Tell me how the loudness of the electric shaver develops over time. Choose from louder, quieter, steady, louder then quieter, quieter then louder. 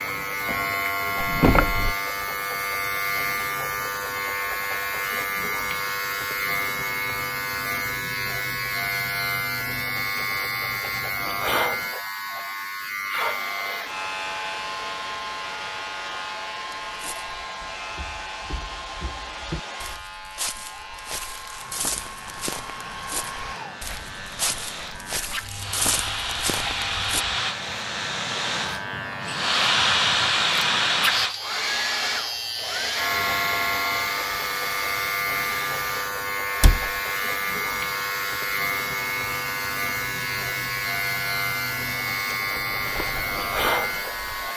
quieter then louder.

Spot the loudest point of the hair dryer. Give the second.
30 s.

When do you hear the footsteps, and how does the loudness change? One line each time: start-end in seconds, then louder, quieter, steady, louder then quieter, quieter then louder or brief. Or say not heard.
16.9-27.2 louder
42.5-44.5 brief.